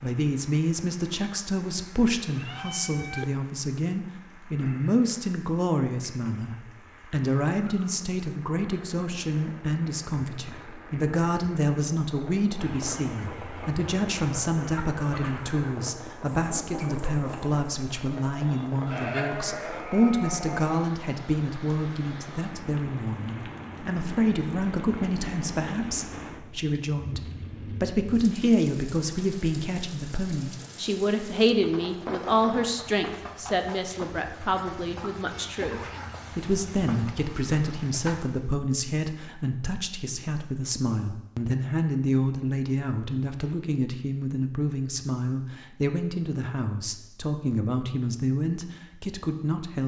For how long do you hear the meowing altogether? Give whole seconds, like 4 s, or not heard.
2 s.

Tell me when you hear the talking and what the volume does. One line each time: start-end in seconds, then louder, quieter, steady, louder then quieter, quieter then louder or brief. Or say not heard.
0.0-49.8 steady.